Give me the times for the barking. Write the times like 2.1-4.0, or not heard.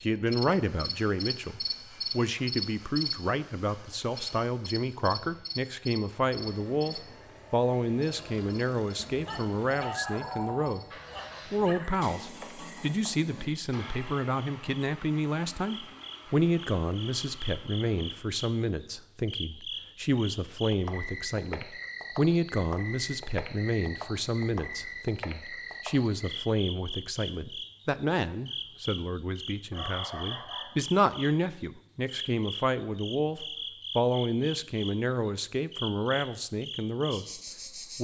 8.9-11.9, 29.7-30.8.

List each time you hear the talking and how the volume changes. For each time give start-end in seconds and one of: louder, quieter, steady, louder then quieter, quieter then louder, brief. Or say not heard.
0.0-10.8 steady
11.5-37.2 steady.